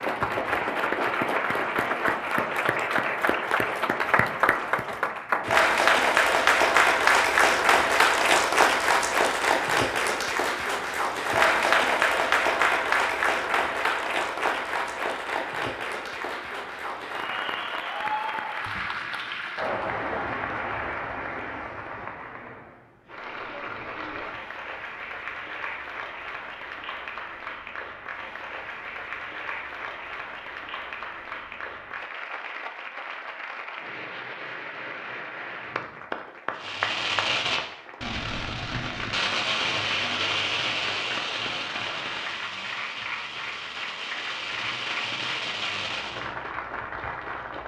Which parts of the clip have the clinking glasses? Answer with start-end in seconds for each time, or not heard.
not heard.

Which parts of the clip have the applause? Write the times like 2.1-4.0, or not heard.
0.0-47.6.